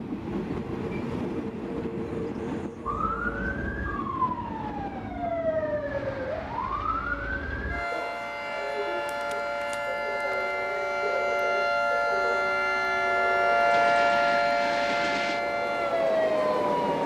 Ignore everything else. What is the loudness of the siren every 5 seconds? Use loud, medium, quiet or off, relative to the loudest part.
medium, medium, loud, loud.